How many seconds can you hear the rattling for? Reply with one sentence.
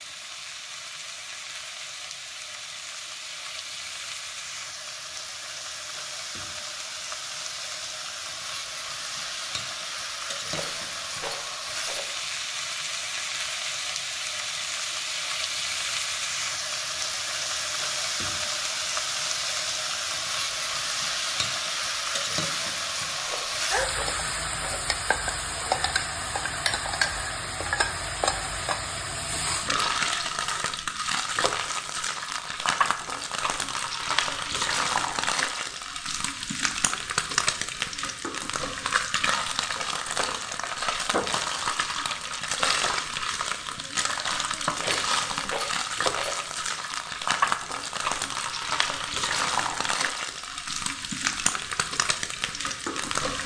You can hear the rattling for 5 seconds altogether.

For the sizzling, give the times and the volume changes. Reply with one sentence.
You can hear the sizzling from 0.0 to 53.4 s, getting louder.